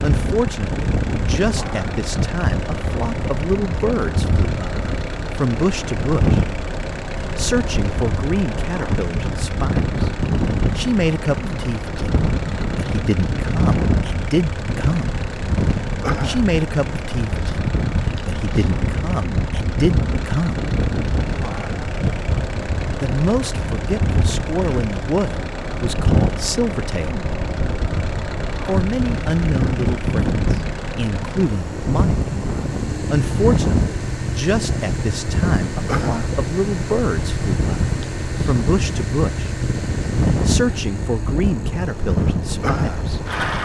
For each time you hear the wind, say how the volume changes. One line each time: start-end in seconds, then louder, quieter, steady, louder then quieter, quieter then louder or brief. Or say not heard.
0.0-43.6 steady.